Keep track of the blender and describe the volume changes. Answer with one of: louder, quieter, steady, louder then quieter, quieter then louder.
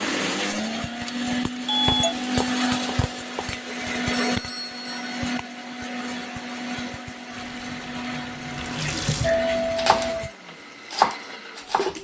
quieter.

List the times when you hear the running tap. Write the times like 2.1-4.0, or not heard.
7.3-9.6.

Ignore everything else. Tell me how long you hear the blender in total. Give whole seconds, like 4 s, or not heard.
12 s.